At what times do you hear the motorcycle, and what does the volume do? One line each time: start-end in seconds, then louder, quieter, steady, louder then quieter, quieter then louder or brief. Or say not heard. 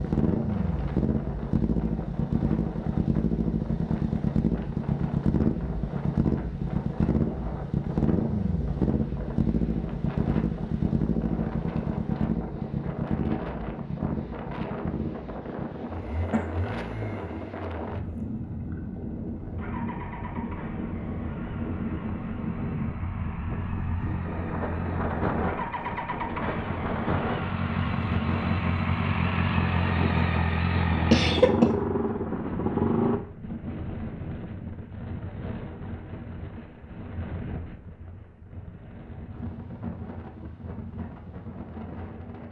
0.0-33.2 quieter then louder.